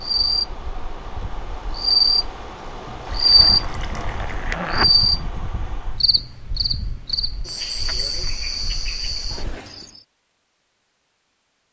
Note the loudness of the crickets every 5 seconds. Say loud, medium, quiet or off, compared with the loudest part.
loud, medium, off.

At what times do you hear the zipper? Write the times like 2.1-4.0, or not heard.
3.4-5.0.